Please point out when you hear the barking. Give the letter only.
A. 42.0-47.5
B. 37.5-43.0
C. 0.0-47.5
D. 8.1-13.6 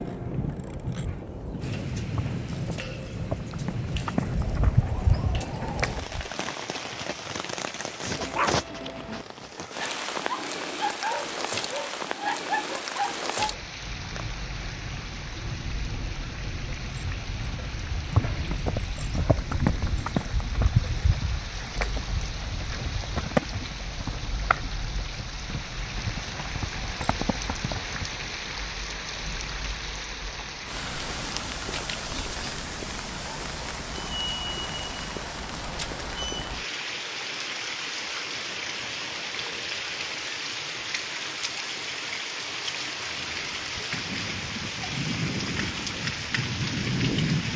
D.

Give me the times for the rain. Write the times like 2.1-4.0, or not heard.
0.0-47.5.